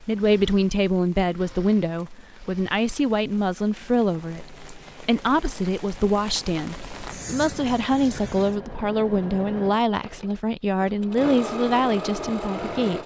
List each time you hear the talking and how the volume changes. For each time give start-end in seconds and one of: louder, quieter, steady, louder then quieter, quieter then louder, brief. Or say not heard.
0.0-13.0 steady.